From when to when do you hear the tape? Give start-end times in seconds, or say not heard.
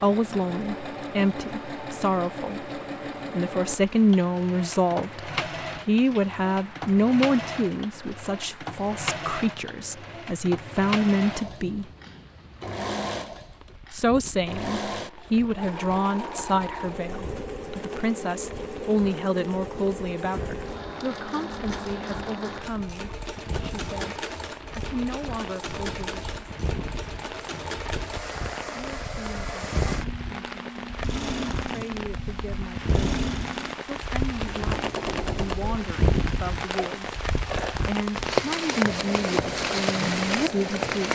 not heard.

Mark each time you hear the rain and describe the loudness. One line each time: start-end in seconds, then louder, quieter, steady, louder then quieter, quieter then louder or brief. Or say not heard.
0.0-41.1 louder.